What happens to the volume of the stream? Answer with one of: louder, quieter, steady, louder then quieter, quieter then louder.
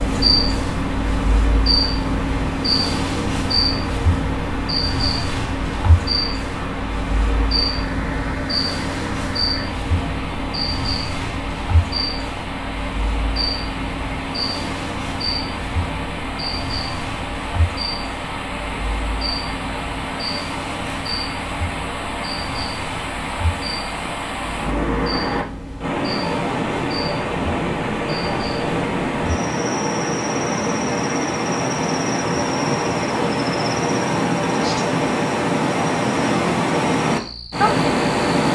louder.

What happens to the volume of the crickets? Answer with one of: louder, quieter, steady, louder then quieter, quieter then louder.
quieter.